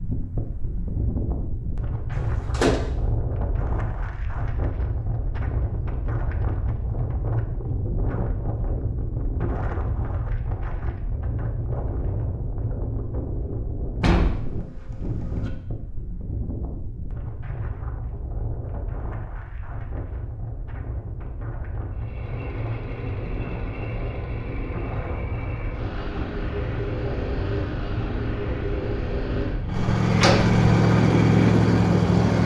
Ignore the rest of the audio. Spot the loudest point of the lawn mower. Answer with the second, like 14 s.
31 s.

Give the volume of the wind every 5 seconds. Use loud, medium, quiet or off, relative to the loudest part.
medium, medium, medium, medium, medium, medium, loud.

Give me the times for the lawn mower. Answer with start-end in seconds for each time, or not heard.
21.9-32.4.